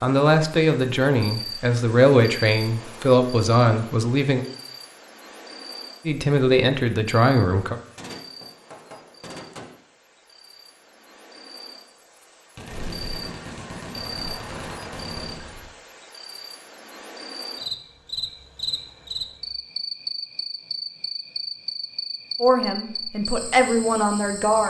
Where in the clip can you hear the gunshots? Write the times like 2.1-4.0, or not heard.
8.0-9.8, 12.6-15.7.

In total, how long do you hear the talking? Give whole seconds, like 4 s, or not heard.
8 s.